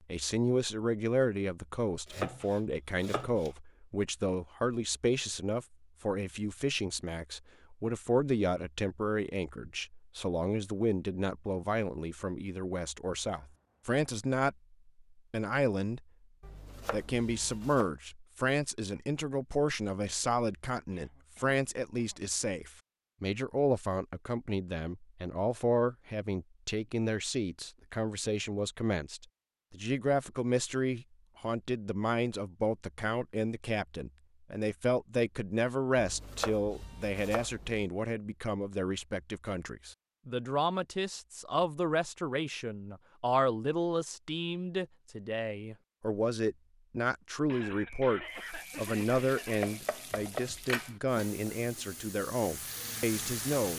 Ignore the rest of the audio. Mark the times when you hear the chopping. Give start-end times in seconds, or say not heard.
2.0-3.5, 16.4-17.9, 36.0-37.9, 49.6-51.0.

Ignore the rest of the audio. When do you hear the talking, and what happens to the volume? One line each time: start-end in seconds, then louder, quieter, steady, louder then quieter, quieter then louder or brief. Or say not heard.
0.1-14.6 steady
15.3-16.0 brief
16.9-53.7 steady.